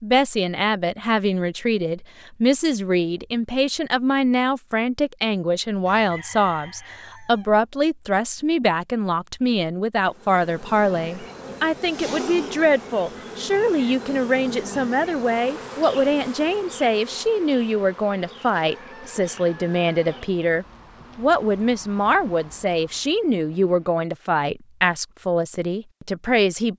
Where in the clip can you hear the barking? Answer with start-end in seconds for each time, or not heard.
not heard.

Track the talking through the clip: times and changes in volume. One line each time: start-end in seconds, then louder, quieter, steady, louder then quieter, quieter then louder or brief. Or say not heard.
0.0-26.7 steady.